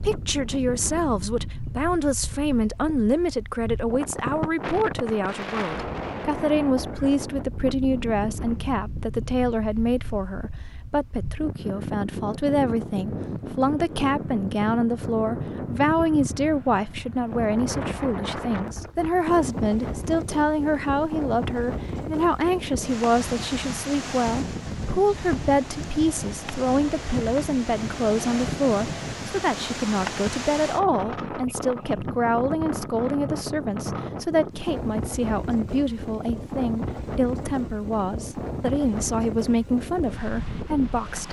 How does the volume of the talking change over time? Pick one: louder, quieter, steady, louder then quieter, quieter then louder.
steady.